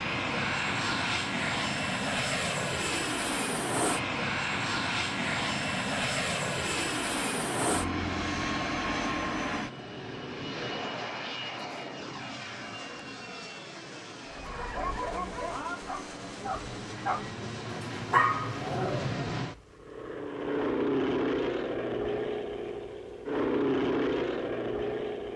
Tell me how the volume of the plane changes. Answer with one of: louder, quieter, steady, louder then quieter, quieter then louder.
quieter then louder.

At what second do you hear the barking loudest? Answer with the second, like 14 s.
18 s.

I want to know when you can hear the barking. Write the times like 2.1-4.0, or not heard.
14.3-19.2.